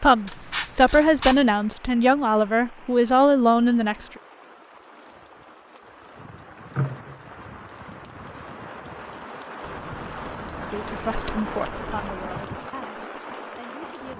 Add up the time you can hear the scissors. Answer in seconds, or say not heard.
5 s.